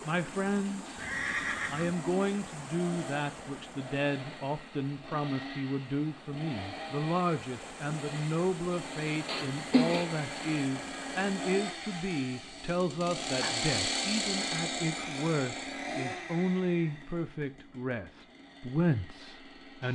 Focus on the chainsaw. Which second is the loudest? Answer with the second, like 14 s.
14 s.